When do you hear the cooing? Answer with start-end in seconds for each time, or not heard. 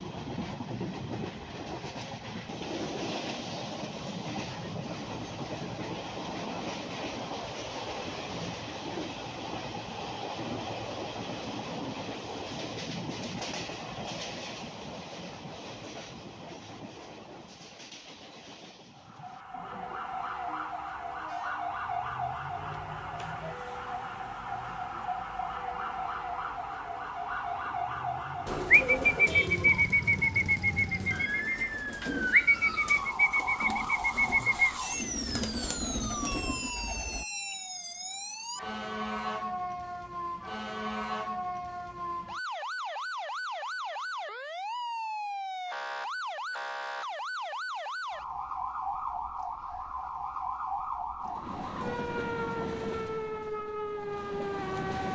28.4-37.2.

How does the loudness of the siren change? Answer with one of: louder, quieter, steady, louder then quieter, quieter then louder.
steady.